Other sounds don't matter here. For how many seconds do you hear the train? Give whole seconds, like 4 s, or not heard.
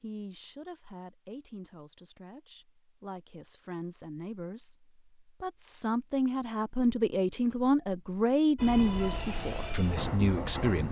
2 s.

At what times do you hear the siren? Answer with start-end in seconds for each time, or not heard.
not heard.